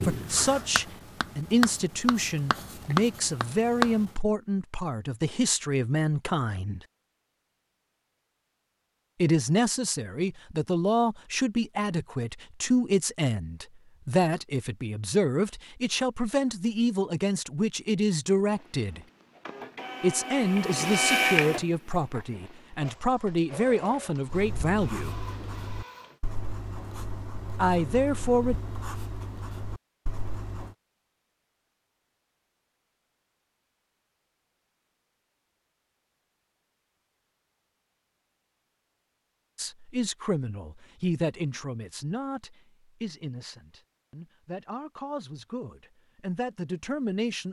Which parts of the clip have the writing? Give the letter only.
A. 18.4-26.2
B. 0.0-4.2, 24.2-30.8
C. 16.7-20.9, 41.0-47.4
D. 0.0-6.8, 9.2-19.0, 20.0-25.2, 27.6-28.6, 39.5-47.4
B.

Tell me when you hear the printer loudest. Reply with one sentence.
The volume of the printer peaks at 21 seconds.